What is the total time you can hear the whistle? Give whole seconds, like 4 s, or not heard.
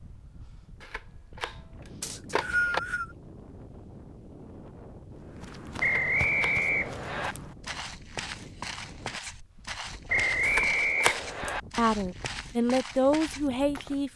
4 s.